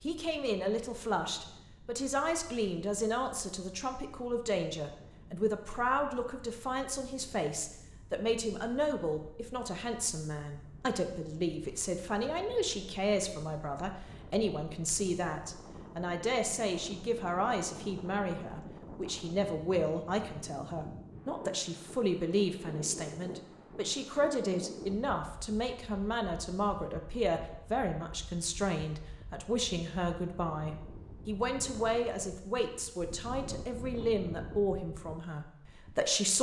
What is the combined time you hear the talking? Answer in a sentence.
You can hear the talking for 36 seconds altogether.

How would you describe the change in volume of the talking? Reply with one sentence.
The loudness of the talking stays about the same.